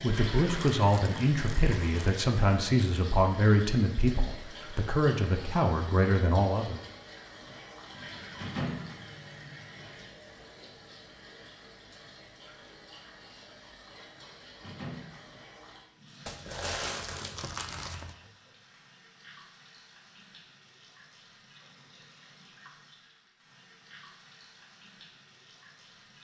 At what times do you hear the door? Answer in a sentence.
You can hear the door from 8.3 to 8.9 s and from 14.6 to 15.3 s.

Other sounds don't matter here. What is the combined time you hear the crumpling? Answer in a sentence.
You can hear the crumpling for 4 seconds altogether.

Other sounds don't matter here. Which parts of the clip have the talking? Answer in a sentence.
You can hear the talking from 0.0 to 6.8 s.